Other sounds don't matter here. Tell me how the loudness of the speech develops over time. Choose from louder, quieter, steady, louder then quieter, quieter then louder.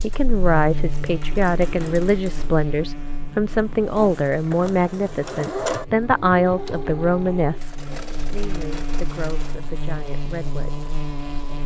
quieter.